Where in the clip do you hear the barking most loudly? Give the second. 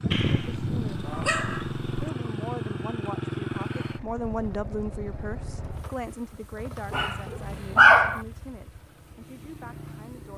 8 s.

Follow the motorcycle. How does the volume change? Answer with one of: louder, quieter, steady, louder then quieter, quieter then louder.
quieter.